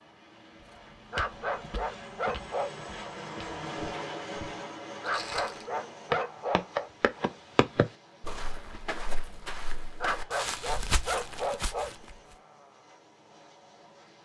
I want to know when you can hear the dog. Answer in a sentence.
The dog can be heard from 1.1 to 2.8 s, from 5.0 to 6.9 s and from 10.0 to 11.9 s.